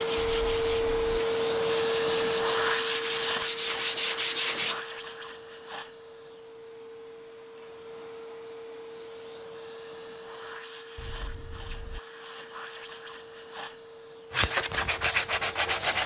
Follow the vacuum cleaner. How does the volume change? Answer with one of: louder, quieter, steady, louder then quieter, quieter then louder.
quieter.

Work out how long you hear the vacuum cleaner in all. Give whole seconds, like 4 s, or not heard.
16 s.